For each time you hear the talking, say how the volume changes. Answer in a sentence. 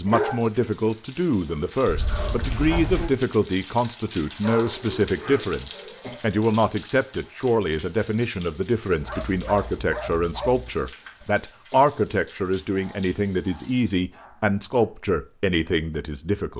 The talking can be heard from 0.0 to 16.5 s, at a steady volume.